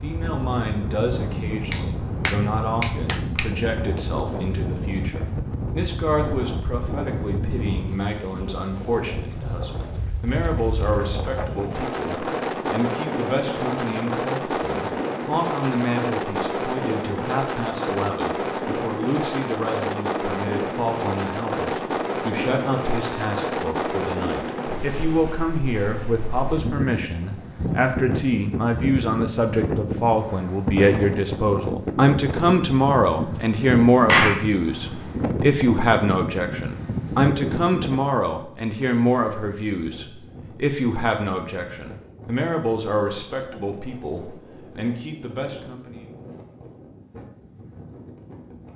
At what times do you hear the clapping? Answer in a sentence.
The clapping can be heard from 1.7 to 3.5 s and from 34.0 to 34.5 s.